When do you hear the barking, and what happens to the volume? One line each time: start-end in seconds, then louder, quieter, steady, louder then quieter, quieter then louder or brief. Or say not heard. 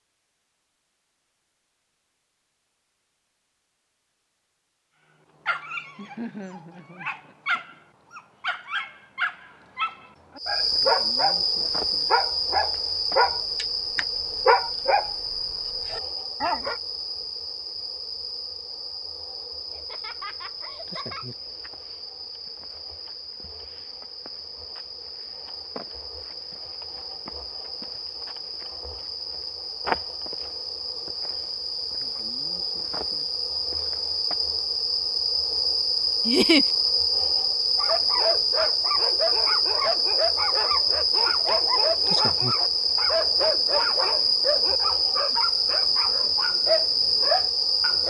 5.5-15.2 louder
15.9-16.8 brief
37.8-48.0 steady.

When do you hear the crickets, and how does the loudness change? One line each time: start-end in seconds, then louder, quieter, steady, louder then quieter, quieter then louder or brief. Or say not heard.
10.3-48.0 quieter then louder.